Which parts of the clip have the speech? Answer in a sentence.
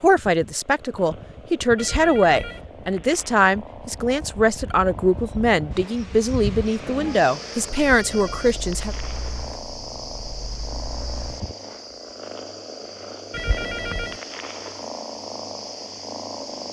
The speech can be heard from 0.0 to 8.9 s.